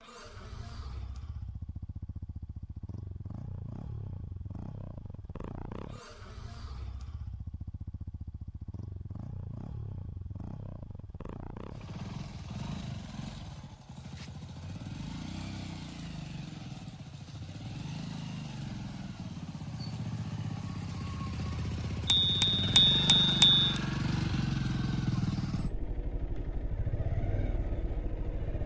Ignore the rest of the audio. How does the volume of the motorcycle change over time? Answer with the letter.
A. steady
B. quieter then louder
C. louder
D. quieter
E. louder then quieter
C.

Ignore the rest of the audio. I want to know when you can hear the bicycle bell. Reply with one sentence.
You can hear the bicycle bell from 22.1 to 23.8 s.